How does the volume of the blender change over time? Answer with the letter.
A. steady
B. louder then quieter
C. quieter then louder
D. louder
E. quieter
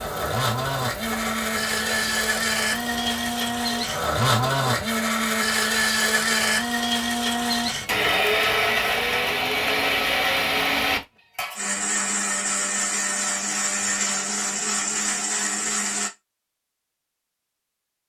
A.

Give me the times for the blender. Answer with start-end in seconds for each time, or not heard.
0.0-16.1.